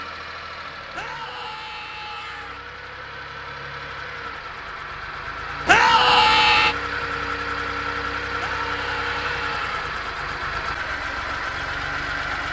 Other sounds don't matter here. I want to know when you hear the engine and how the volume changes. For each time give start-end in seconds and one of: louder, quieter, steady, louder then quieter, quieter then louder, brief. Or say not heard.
0.0-12.4 louder.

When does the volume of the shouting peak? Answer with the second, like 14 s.
6 s.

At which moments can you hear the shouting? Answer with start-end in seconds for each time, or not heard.
0.9-2.6, 5.7-6.8, 8.3-9.8.